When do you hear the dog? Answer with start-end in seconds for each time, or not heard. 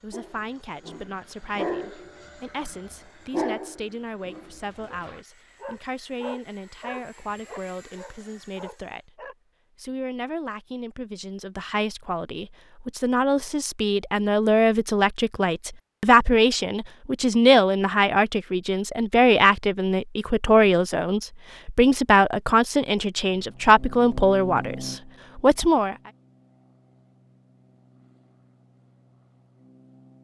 0.1-9.3.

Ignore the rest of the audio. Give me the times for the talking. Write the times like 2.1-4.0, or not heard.
0.0-25.9.